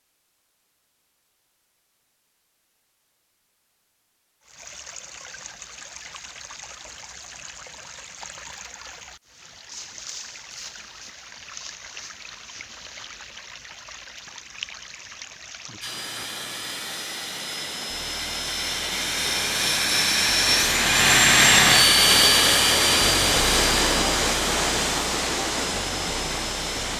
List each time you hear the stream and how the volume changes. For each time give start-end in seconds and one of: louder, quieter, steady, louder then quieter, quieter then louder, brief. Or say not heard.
4.4-26.9 louder.